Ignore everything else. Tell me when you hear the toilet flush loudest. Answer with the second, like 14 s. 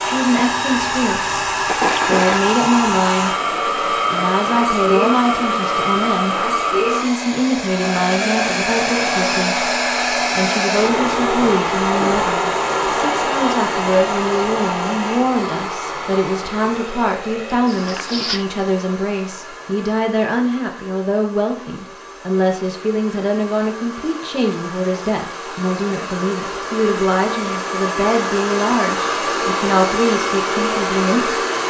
2 s.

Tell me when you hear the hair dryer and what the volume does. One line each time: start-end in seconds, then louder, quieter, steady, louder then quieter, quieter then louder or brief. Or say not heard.
0.0-31.6 quieter then louder.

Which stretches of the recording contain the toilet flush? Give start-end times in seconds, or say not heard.
1.6-2.5, 17.6-18.4.